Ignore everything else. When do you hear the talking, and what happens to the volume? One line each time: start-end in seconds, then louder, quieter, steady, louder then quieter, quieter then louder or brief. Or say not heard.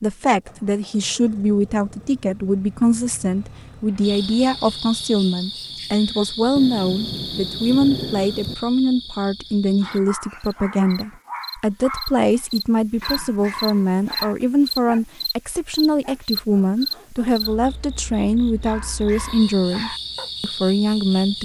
0.0-21.4 steady.